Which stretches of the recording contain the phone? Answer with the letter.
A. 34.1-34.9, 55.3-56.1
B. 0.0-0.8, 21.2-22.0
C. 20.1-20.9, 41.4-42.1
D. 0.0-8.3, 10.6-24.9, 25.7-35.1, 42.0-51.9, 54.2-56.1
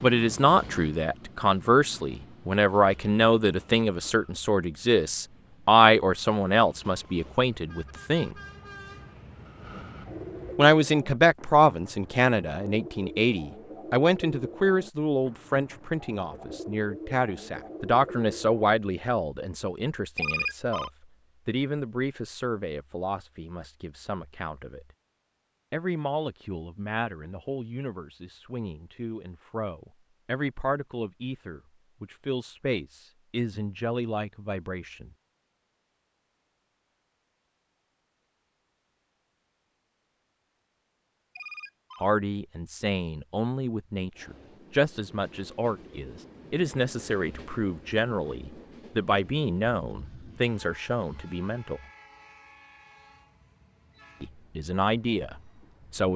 C.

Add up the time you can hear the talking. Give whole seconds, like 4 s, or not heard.
44 s.